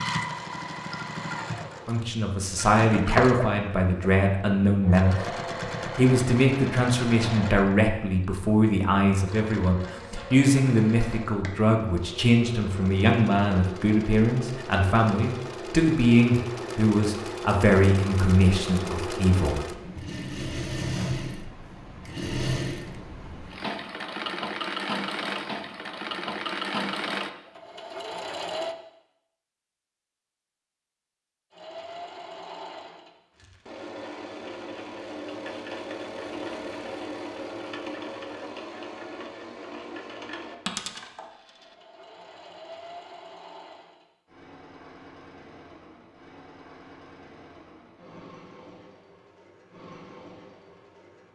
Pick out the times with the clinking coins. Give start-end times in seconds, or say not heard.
40.6-41.8.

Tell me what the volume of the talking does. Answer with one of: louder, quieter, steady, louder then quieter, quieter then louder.
steady.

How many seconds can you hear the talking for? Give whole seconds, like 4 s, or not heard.
18 s.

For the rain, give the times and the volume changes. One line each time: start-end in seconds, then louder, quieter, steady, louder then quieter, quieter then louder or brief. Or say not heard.
not heard.